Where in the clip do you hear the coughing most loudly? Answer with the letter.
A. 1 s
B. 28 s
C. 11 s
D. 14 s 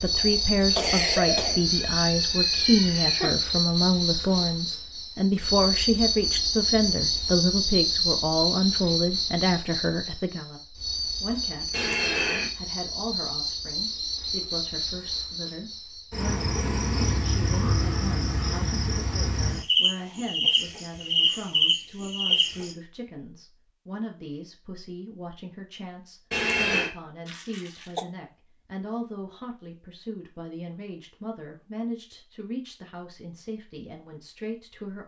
A.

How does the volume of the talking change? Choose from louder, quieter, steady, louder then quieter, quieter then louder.
quieter.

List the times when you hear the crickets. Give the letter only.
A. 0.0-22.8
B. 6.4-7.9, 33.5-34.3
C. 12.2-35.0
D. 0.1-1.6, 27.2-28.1
A.